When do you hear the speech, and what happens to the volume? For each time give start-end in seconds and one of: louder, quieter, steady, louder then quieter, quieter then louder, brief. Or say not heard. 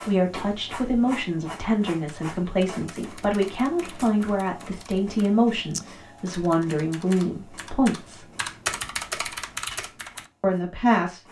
0.0-8.2 steady
10.4-11.2 brief.